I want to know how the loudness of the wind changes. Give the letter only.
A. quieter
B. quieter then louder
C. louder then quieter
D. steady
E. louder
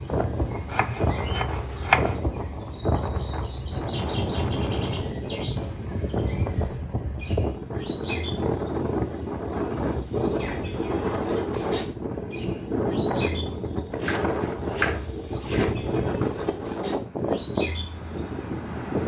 D.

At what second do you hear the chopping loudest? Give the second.
2 s.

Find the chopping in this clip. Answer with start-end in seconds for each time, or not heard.
0.7-2.2, 14.0-15.8.